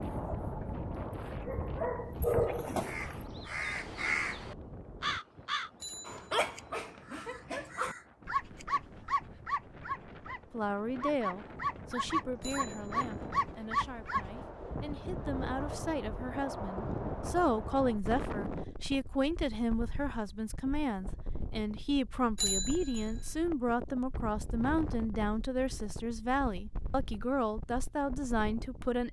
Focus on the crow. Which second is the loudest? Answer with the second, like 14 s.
4 s.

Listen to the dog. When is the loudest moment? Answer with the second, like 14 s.
2 s.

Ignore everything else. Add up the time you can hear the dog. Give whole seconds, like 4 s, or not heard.
12 s.